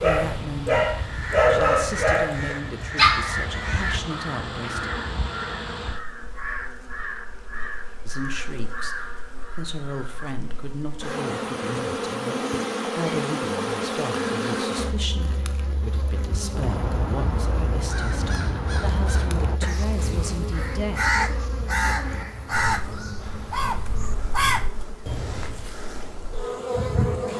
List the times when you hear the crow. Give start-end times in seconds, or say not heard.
0.9-10.3, 16.5-25.7.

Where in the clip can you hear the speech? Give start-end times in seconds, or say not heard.
0.0-4.9, 8.1-21.1.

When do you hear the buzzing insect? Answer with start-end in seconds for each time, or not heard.
0.0-27.3.